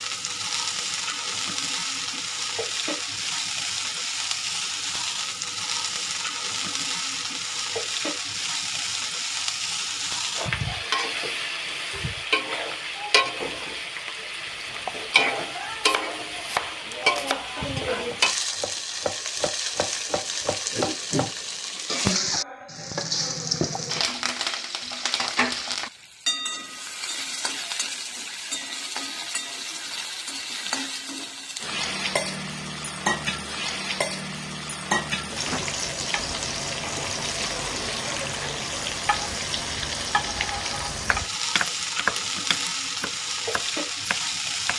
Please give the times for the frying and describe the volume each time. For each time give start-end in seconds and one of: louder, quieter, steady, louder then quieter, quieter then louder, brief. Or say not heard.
0.0-44.7 steady.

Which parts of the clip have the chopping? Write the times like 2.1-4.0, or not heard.
14.4-21.4, 41.0-44.7.